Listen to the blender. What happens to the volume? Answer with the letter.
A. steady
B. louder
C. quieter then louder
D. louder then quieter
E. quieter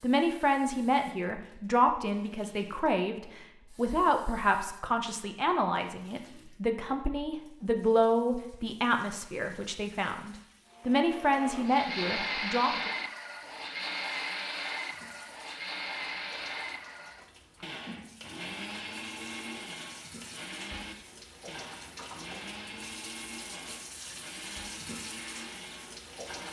E.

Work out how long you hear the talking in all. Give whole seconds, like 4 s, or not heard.
13 s.